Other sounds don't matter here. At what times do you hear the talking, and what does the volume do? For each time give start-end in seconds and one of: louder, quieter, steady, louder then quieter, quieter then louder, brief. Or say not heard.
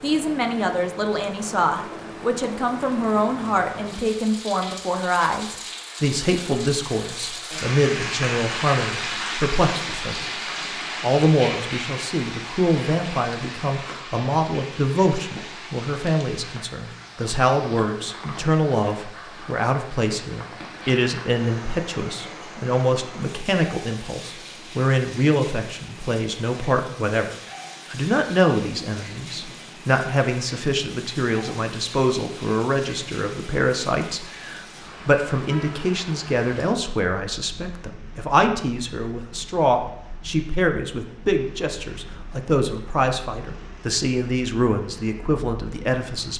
0.0-46.3 steady.